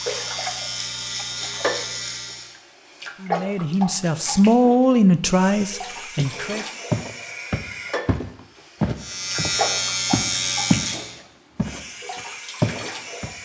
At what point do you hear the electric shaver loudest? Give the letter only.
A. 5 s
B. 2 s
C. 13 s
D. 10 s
D.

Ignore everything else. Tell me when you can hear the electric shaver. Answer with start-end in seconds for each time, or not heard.
0.0-2.5, 8.9-11.2.